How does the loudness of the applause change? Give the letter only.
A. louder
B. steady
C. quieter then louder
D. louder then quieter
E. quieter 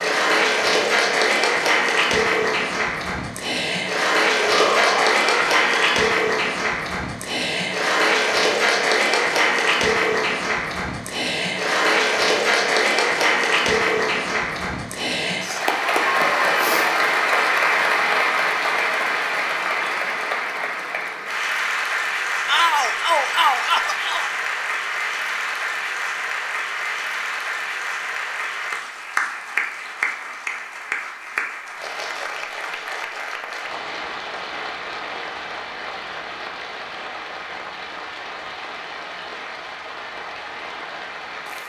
E.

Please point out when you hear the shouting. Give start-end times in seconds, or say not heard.
4.4-6.0, 22.4-24.3.